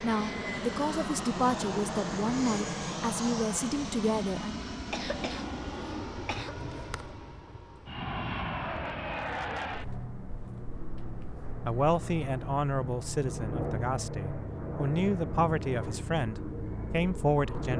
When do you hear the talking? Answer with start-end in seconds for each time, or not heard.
0.0-4.5, 11.7-17.7.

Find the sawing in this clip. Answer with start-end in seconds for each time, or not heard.
not heard.